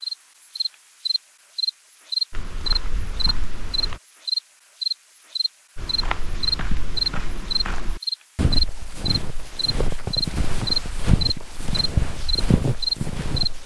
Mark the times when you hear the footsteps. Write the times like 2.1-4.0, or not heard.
2.3-4.0, 5.8-13.6.